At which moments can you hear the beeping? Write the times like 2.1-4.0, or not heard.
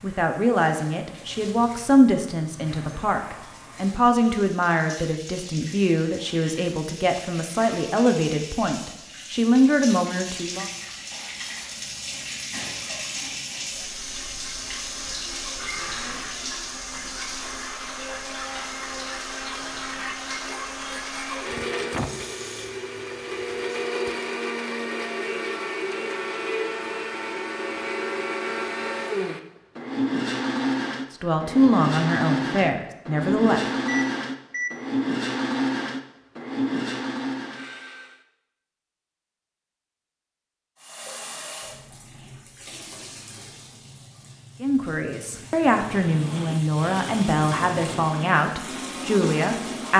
33.9-34.8.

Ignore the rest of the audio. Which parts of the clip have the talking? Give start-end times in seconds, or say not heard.
0.0-10.7, 31.2-33.6, 44.6-49.9.